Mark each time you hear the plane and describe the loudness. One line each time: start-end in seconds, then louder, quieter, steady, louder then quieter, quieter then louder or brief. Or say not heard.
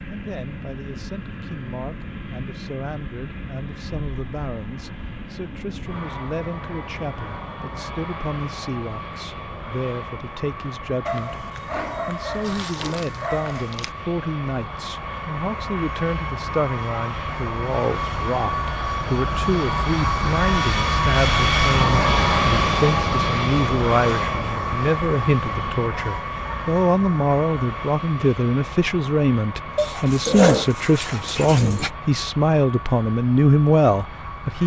0.0-34.6 louder then quieter.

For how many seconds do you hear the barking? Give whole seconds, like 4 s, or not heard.
5 s.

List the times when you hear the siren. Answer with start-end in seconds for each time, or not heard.
not heard.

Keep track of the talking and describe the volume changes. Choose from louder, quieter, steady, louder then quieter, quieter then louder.
louder.